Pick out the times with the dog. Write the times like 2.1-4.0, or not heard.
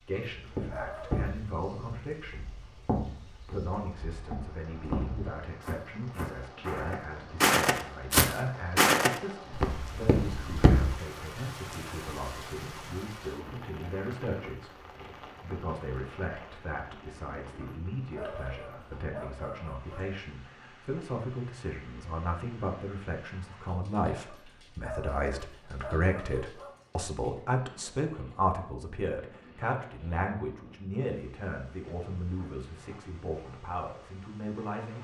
0.1-1.3, 17.6-20.1, 24.2-26.8.